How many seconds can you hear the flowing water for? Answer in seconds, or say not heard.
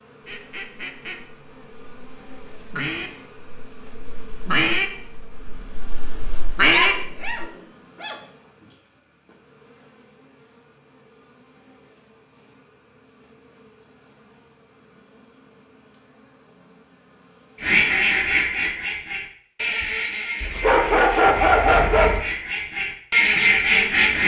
not heard.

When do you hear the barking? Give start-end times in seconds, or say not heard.
6.7-8.2, 20.4-22.2.